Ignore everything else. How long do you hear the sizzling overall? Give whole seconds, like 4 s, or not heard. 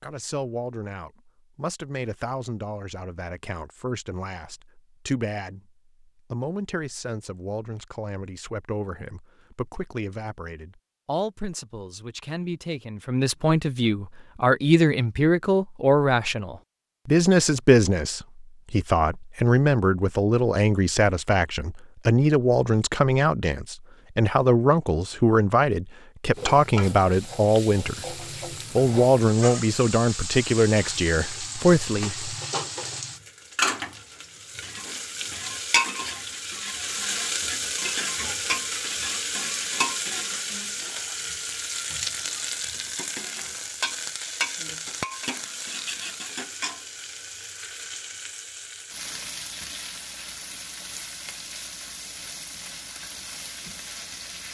28 s.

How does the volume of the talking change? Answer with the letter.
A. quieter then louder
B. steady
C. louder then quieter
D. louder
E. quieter
D.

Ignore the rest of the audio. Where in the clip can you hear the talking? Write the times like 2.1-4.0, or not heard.
0.0-28.1, 28.8-32.3.